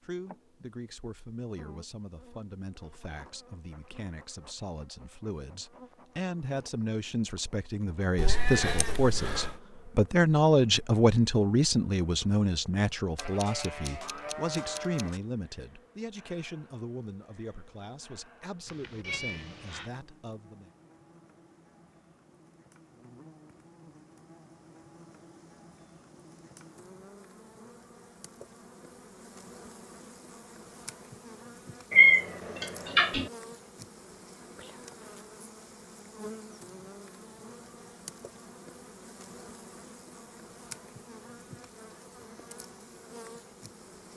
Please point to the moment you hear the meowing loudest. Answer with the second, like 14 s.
32 s.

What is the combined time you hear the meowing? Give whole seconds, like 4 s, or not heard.
4 s.